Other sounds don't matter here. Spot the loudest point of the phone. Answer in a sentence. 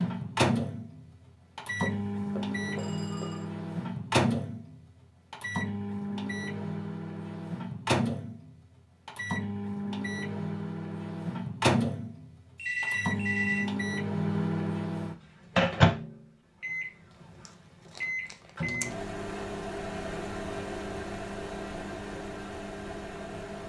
The loudest moment of the phone is at 13 seconds.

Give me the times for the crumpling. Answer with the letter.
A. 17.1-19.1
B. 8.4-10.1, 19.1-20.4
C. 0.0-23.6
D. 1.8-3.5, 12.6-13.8
A.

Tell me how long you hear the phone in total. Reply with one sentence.
The phone can be heard for 3 seconds in total.